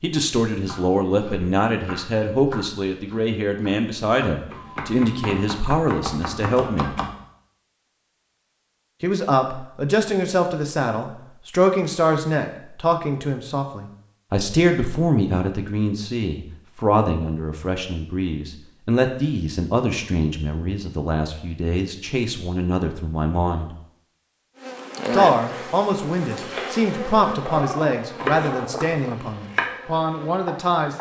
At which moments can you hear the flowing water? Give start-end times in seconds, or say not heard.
not heard.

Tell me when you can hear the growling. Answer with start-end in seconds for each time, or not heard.
27.4-29.2.